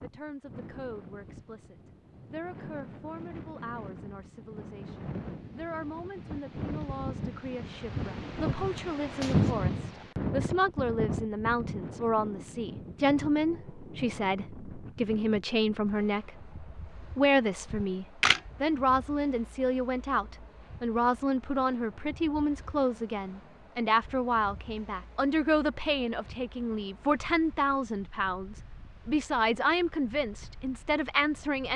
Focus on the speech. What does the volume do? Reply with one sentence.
The loudness of the speech goes up.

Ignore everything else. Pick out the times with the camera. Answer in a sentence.
You can hear the camera from 17.7 to 18.4 s.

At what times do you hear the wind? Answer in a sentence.
The wind can be heard from 0.0 to 31.7 s.